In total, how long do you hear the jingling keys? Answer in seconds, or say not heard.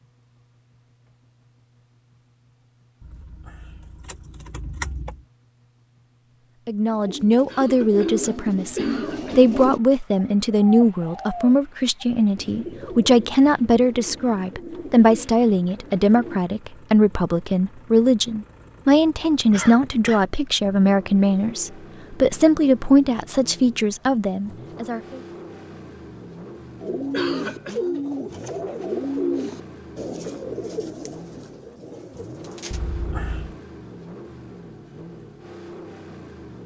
3 s.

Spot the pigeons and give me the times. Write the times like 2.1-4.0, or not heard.
6.9-16.4, 26.8-32.8.